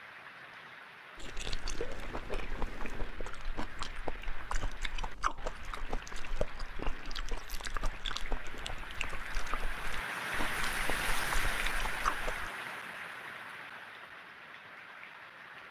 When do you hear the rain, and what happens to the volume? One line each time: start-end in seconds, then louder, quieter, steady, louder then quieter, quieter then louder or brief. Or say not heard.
0.0-15.6 louder then quieter.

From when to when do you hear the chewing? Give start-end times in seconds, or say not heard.
1.1-12.5.